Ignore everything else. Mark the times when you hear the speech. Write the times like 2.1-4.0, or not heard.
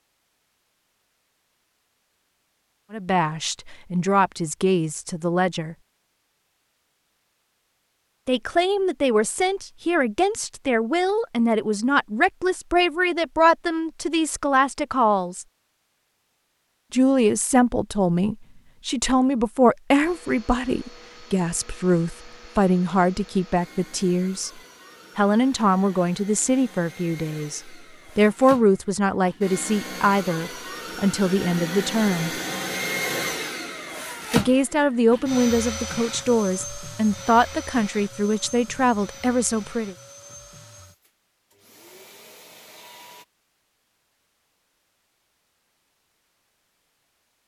2.9-5.8, 8.2-15.4, 16.9-24.5, 25.1-32.4, 34.3-40.0.